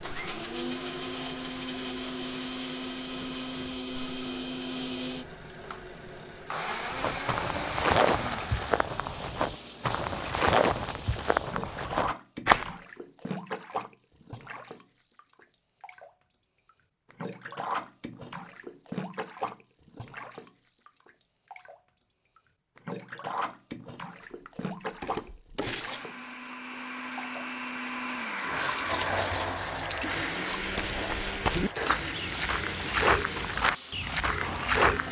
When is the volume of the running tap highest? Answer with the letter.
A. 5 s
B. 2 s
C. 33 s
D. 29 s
D.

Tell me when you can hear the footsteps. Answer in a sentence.
The footsteps can be heard from 6.8 to 12.8 s and from 30.6 to 35.0 s.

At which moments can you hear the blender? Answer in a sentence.
You can hear the blender from 0.0 to 8.8 s and from 24.2 to 35.0 s.